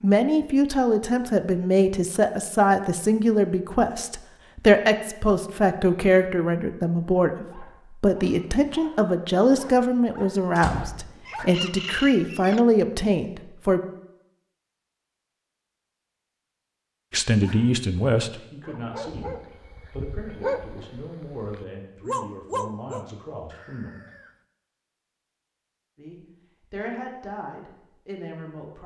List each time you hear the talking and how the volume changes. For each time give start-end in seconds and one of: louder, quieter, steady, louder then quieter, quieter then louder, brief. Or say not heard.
0.0-13.8 steady
17.1-23.9 quieter
25.9-28.8 brief.